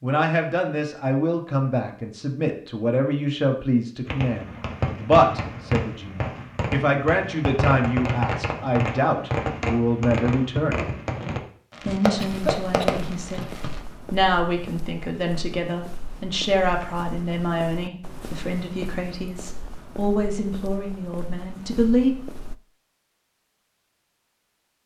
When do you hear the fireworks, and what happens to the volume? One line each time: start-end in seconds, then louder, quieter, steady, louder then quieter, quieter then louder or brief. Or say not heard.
4.0-13.8 steady.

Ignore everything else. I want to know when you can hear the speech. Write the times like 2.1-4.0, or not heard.
0.0-10.9, 11.8-13.5, 14.1-22.1.